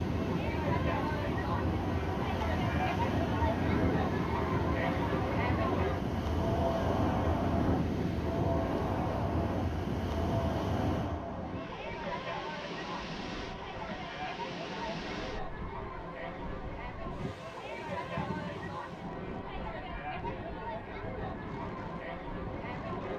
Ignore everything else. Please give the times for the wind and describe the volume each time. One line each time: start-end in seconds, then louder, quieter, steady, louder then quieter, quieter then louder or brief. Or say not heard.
0.0-23.1 quieter.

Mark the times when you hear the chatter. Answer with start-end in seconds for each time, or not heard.
0.0-23.1.